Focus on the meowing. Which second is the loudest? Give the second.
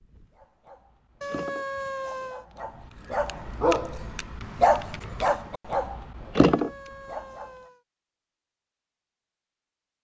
2 s.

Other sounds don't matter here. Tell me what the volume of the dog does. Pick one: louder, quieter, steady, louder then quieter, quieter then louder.
louder.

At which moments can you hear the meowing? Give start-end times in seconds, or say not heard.
1.2-2.5, 6.4-7.8.